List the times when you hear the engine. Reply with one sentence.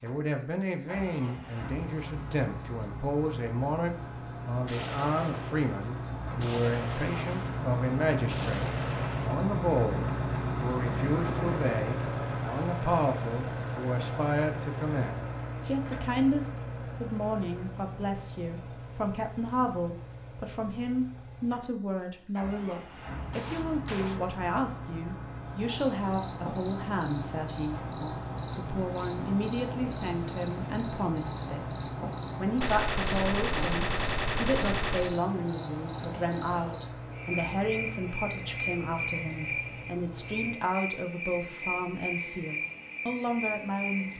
You can hear the engine from 0.0 to 40.5 s.